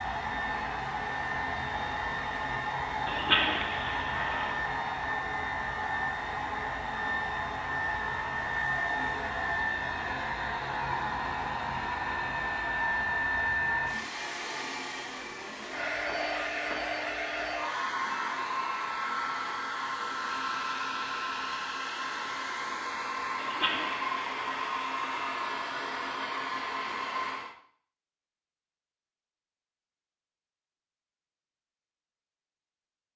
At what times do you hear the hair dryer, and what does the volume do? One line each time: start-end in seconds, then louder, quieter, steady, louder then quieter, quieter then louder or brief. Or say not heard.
0.0-27.6 steady.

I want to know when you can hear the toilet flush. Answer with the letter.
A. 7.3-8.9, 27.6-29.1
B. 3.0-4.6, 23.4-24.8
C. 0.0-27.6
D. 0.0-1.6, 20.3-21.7
B.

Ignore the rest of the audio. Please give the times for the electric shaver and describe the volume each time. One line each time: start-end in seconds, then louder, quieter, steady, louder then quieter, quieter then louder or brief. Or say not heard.
not heard.